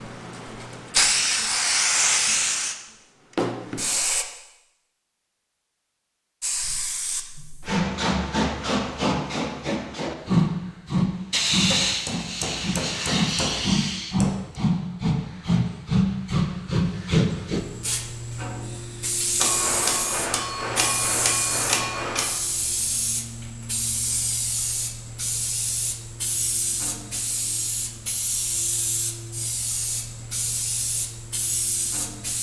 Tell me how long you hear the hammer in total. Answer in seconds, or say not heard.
6 s.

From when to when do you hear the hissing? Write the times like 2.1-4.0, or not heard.
0.0-4.2, 6.4-32.3.